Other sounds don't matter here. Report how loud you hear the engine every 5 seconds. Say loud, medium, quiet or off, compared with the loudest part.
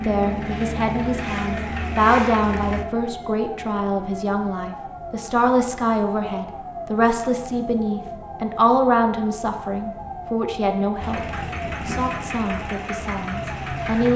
loud, off, loud.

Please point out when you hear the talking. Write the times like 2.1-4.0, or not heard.
0.0-11.2, 11.8-14.1.